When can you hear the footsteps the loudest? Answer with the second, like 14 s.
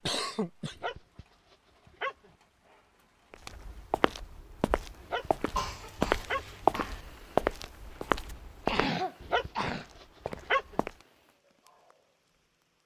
7 s.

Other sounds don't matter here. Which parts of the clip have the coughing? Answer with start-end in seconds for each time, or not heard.
0.0-0.9, 5.5-7.0, 8.7-10.3.